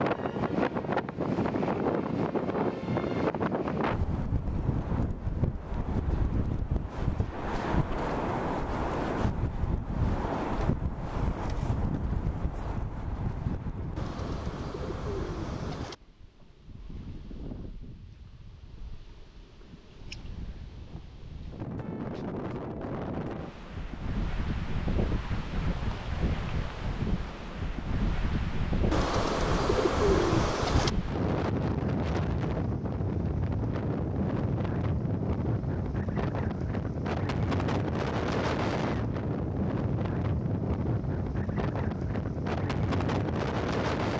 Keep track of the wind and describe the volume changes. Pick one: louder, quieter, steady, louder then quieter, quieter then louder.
quieter then louder.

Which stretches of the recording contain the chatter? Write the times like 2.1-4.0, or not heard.
not heard.